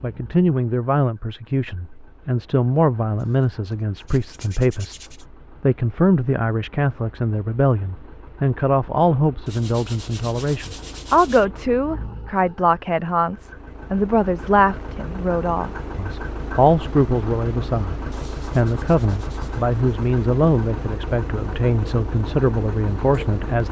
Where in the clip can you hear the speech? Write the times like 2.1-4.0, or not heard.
0.0-23.6.